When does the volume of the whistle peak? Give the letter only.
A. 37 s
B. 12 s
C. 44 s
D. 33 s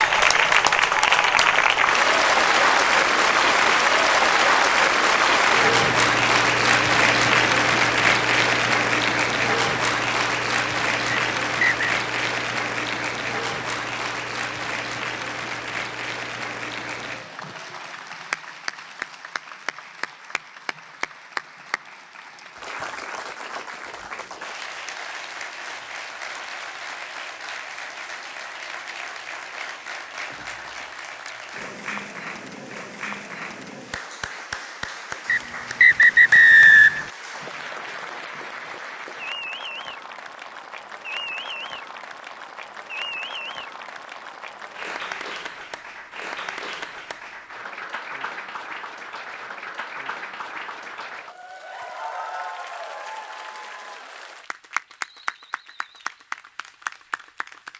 A.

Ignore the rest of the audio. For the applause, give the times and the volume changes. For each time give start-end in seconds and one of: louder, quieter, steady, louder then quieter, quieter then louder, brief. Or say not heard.
0.0-57.7 quieter.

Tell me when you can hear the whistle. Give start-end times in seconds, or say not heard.
11.1-11.9, 35.2-37.1.